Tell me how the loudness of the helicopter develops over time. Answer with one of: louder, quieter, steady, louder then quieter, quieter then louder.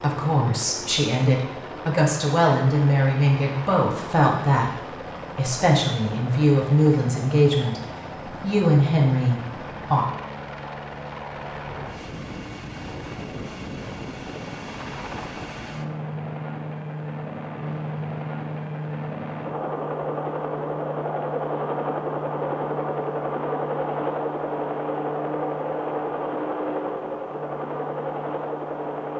louder.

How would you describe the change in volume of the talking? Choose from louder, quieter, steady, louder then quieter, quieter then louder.
steady.